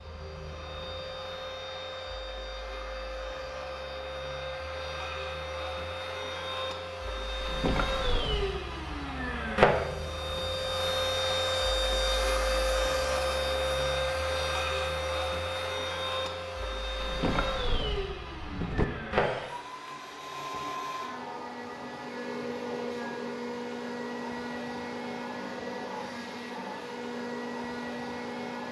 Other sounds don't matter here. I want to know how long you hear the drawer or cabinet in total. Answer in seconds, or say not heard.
3 s.